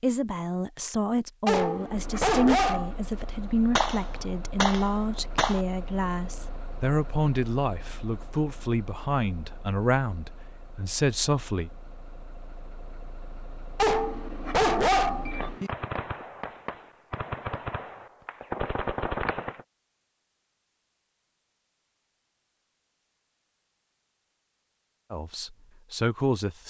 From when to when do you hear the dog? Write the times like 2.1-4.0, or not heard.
1.4-3.0, 13.8-15.7.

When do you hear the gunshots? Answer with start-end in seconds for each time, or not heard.
3.8-5.7, 15.2-19.6.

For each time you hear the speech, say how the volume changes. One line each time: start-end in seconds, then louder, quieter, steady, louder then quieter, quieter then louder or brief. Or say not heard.
0.0-11.7 steady
25.1-26.6 brief.